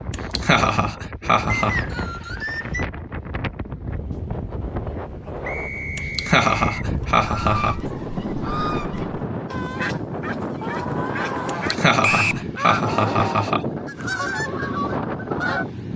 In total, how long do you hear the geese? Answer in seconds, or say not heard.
9 s.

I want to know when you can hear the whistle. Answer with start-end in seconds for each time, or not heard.
1.4-2.9, 5.4-6.8, 12.0-12.4.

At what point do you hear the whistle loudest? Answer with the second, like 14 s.
12 s.